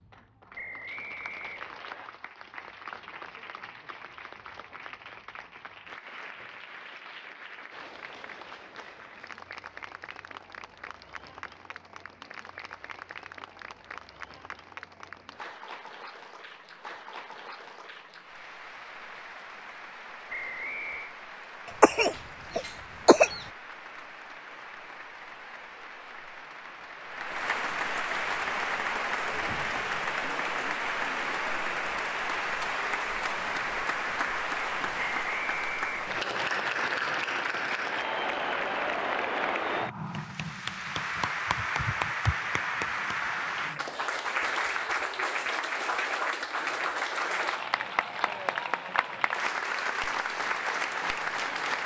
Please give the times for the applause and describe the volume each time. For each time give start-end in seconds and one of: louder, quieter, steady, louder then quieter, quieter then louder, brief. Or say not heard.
0.0-51.8 louder.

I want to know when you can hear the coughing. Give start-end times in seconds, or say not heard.
21.8-23.4.